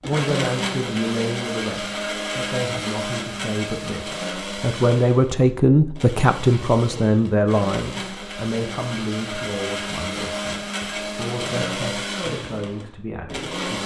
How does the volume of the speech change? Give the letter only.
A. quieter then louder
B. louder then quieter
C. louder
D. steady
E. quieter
B.